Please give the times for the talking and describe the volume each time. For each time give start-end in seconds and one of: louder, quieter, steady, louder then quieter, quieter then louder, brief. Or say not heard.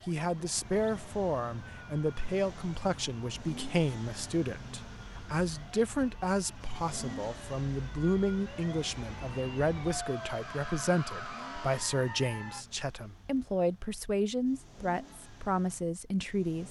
0.1-16.6 steady.